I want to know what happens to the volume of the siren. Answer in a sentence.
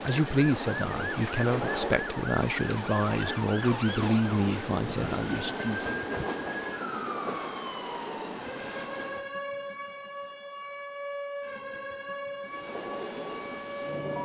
The volume of the siren stays about the same.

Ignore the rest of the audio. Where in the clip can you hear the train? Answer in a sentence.
You can hear the train from 0.0 to 9.3 s and from 12.4 to 14.2 s.